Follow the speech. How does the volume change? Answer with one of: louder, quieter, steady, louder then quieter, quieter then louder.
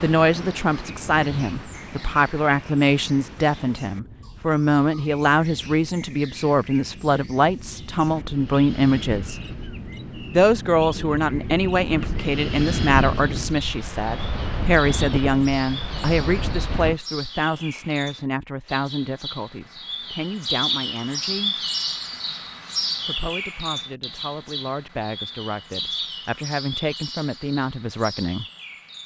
quieter.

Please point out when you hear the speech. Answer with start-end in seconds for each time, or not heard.
0.0-9.3, 10.3-21.6, 23.1-28.4.